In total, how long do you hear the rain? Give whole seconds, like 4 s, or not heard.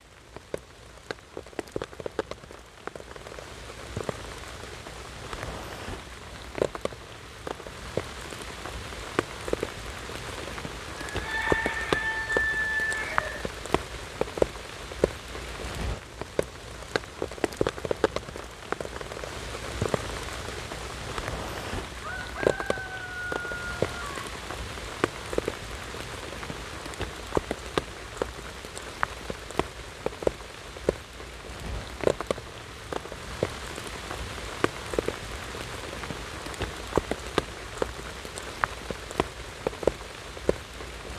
41 s.